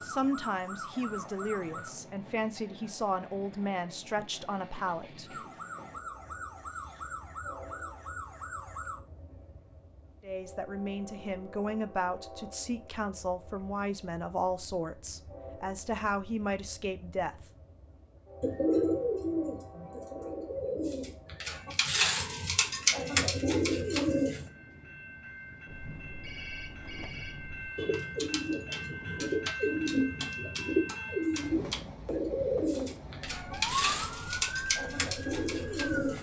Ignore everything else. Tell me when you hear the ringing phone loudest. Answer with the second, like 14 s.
27 s.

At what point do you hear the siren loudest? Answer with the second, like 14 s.
34 s.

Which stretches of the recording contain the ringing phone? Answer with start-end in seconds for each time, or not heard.
25.6-27.7.